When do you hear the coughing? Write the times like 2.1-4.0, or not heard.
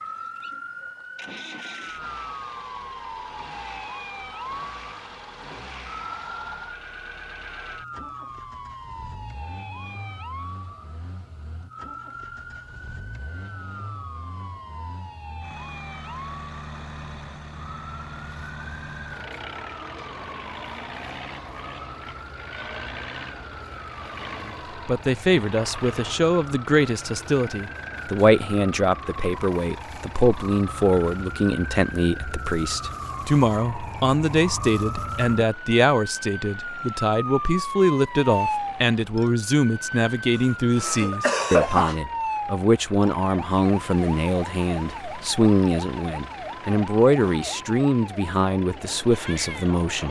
40.4-42.0.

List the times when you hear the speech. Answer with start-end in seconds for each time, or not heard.
24.4-50.0.